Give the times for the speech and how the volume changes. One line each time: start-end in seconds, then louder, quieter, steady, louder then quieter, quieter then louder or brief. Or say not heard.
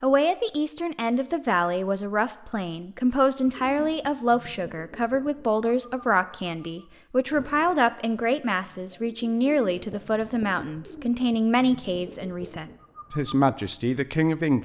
0.0-14.6 steady.